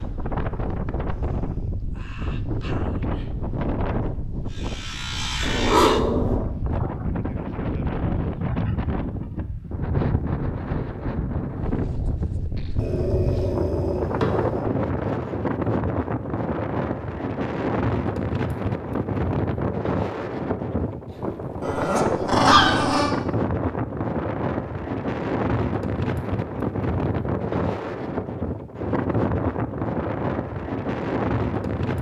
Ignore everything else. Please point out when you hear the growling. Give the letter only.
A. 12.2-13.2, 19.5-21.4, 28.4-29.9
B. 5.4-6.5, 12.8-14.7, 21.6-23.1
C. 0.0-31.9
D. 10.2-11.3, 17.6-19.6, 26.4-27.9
B.